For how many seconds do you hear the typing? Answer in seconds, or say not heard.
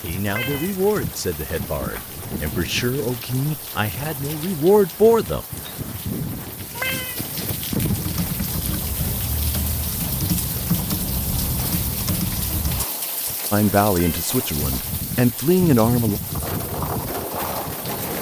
5 s.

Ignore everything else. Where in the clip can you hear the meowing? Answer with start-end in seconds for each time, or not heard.
0.2-0.8, 6.8-7.2, 13.9-14.3.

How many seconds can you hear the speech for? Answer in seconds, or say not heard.
8 s.